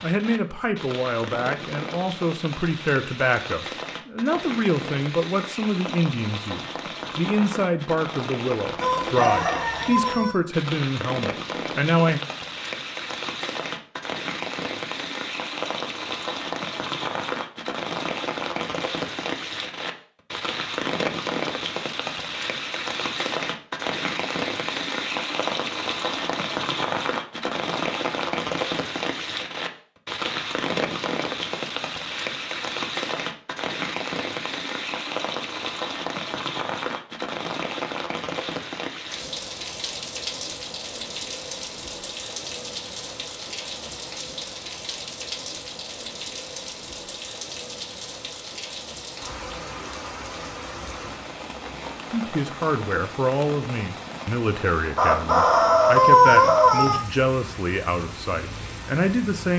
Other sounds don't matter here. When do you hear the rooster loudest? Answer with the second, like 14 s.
56 s.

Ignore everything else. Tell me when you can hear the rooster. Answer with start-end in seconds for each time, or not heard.
8.8-10.3, 55.0-57.0.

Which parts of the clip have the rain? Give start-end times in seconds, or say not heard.
0.0-59.5.